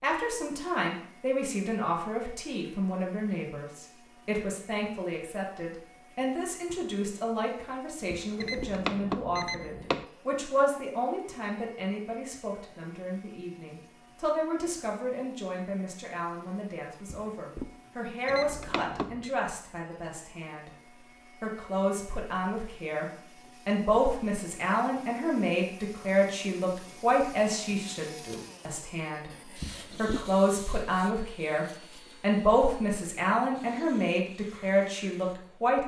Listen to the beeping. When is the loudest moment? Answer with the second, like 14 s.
9 s.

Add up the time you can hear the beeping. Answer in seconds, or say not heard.
3 s.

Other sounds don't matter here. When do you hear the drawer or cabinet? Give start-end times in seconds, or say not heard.
8.1-8.8, 17.1-17.8, 29.6-30.3.